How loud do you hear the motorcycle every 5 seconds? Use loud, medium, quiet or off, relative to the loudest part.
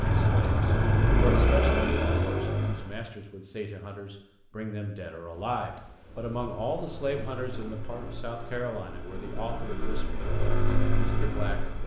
loud, quiet, medium.